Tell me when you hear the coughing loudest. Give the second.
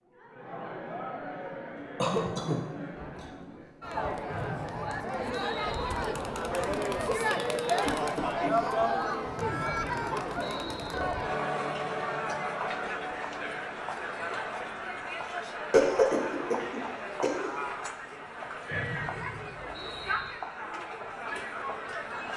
16 s.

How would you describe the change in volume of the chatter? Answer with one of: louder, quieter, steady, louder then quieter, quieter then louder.
louder then quieter.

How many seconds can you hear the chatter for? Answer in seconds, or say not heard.
22 s.